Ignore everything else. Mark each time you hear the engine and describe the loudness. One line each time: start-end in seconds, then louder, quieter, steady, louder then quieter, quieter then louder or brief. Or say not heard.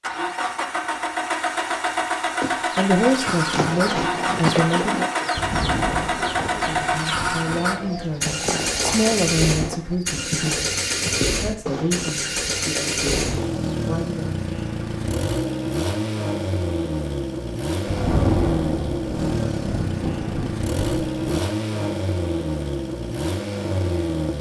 0.0-24.3 steady.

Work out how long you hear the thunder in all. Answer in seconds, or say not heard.
6 s.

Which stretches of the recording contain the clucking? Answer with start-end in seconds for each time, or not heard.
2.2-13.7.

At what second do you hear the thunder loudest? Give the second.
18 s.